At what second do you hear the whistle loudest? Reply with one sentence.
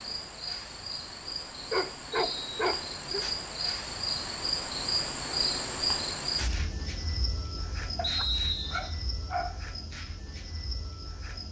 The volume of the whistle peaks at 8 seconds.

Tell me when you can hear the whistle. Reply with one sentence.
The whistle can be heard from 2.1 to 2.6 s and from 8.0 to 8.9 s.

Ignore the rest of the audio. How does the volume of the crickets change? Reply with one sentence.
The volume of the crickets goes up, then down.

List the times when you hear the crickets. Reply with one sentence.
The crickets can be heard from 0.0 to 11.4 s.